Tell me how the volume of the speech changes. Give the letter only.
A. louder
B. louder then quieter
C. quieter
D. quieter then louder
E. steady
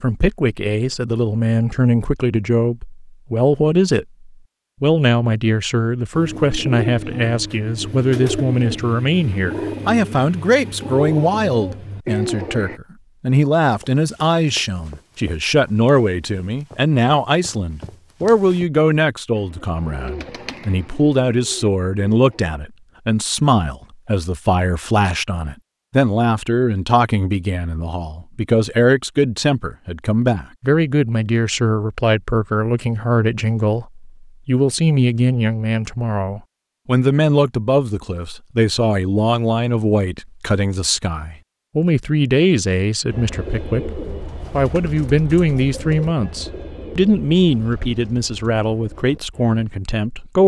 E.